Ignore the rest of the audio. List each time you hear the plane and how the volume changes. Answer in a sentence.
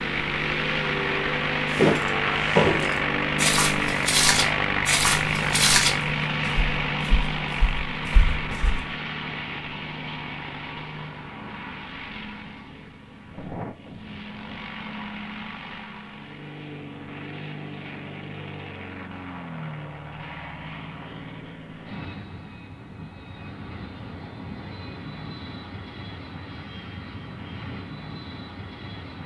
You can hear the plane from 0.0 to 29.2 s, getting quieter.